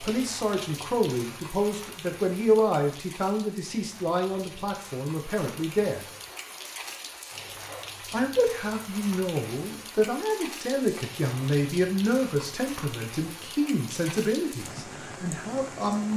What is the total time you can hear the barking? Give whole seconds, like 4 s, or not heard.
2 s.